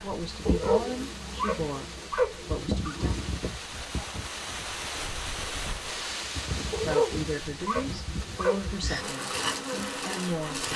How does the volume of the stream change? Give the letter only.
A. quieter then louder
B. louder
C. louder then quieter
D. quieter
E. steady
C.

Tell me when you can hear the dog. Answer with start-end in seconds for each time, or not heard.
0.5-3.4, 6.7-8.8.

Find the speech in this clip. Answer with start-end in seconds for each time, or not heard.
0.0-3.1, 6.8-10.7.